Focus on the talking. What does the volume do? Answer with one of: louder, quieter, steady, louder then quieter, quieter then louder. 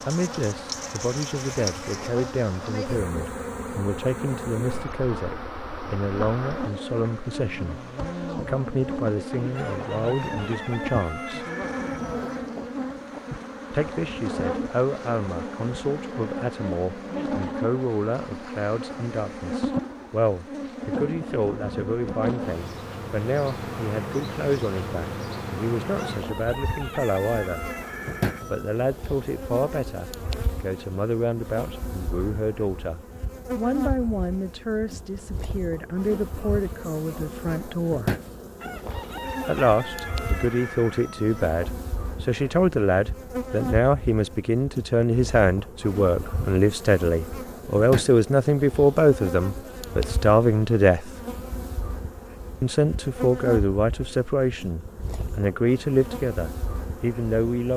louder.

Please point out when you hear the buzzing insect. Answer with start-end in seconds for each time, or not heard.
0.0-57.7.